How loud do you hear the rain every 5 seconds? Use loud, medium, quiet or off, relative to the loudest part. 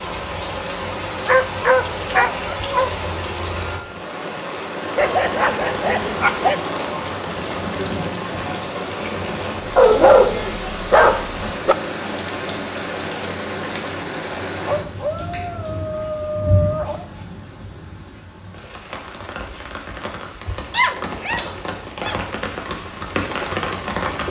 loud, loud, loud, medium, loud.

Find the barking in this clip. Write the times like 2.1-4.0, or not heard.
1.2-3.0, 5.0-6.6, 9.8-11.8, 14.7-17.1, 20.7-22.2.